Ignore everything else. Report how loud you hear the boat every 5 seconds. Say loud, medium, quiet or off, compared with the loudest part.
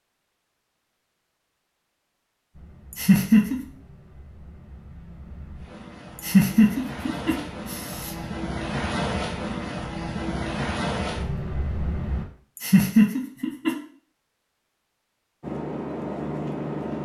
quiet, loud, loud, loud.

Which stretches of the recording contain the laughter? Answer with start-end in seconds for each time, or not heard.
2.9-3.6, 6.2-8.2, 12.6-13.8.